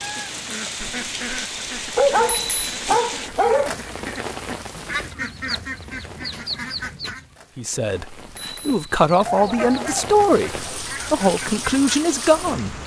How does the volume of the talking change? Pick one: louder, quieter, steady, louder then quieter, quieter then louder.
louder.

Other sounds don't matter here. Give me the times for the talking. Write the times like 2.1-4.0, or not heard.
7.5-12.8.